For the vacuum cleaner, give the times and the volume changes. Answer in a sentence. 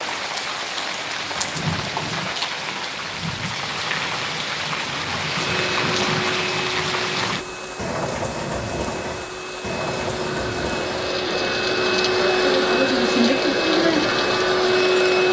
The vacuum cleaner can be heard from 5.2 to 15.2 s, getting quieter then louder.